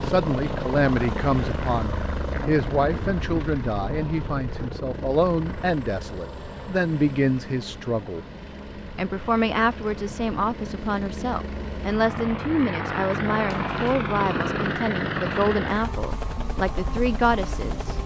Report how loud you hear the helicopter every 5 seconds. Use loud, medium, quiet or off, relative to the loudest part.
loud, medium, loud, loud.